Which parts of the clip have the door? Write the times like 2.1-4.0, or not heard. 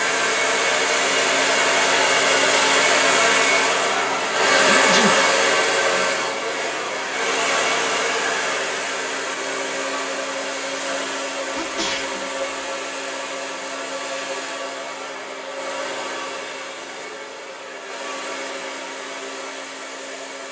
not heard.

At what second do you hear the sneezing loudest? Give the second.
5 s.